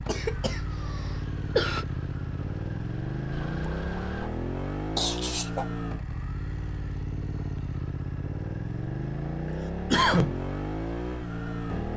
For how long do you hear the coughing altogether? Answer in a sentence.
The coughing can be heard for 3 seconds in total.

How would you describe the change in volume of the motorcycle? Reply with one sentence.
The volume of the motorcycle stays about the same.